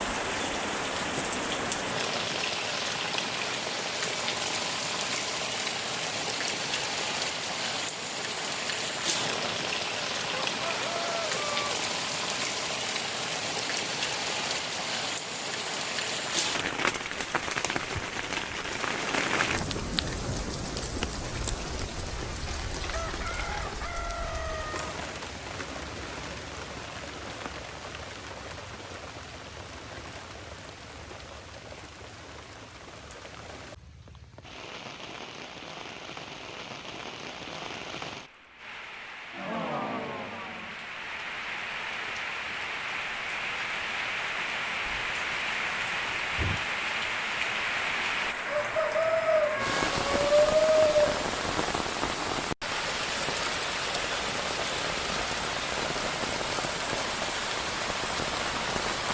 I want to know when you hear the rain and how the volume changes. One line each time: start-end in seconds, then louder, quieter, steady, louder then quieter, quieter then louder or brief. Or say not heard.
0.0-59.1 quieter then louder.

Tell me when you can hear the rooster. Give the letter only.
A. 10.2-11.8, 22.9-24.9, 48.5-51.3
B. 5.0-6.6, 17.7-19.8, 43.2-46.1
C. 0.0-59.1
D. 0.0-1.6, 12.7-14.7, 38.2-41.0
A.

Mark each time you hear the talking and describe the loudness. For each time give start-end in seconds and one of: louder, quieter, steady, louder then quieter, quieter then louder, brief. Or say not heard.
not heard.